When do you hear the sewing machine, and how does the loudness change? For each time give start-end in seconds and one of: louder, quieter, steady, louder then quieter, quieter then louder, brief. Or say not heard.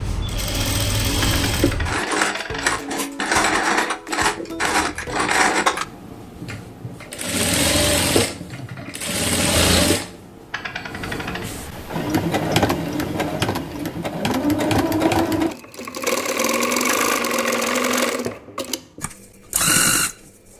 0.0-20.1 steady.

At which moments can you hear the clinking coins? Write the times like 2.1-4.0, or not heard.
1.2-2.7, 10.5-11.5, 16.9-18.1.